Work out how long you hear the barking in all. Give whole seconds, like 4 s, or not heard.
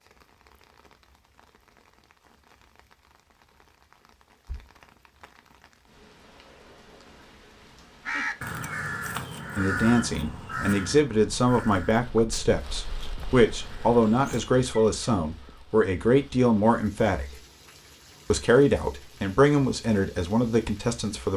not heard.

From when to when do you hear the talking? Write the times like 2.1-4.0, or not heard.
9.6-17.4, 18.3-21.3.